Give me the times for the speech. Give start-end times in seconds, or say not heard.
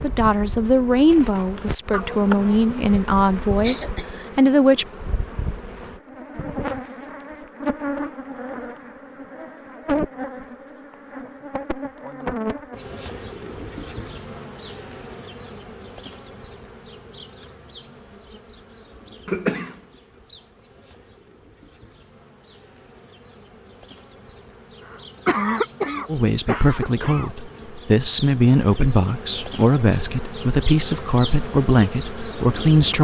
0.0-4.8, 26.1-32.9.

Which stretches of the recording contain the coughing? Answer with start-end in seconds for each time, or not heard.
1.9-4.0, 19.2-19.8, 24.9-27.3.